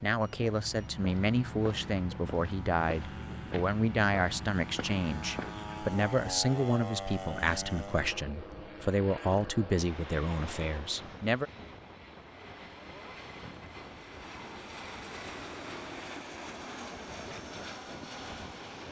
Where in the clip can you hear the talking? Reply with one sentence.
The talking can be heard from 0.0 to 11.5 s.